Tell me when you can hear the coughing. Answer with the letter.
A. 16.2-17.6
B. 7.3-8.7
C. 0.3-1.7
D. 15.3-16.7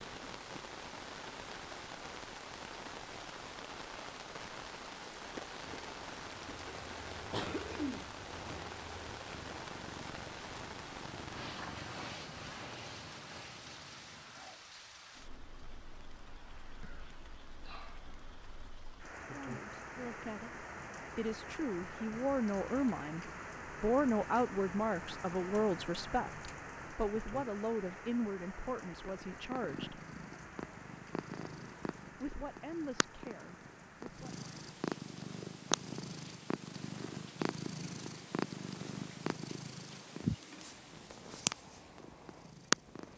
B.